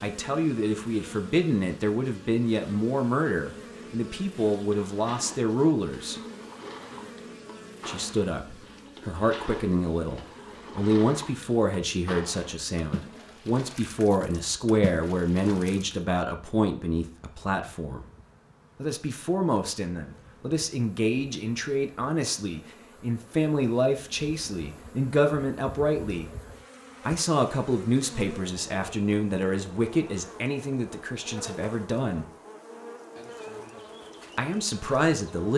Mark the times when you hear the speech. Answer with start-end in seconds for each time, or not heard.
0.0-6.2, 7.8-18.1, 18.8-26.2, 27.1-32.2, 34.4-35.5.